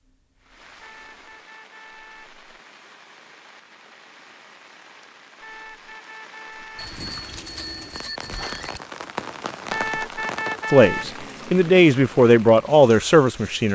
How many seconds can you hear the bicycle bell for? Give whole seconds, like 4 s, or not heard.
2 s.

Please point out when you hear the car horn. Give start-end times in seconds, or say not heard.
0.8-2.4, 5.4-7.0, 9.7-11.1.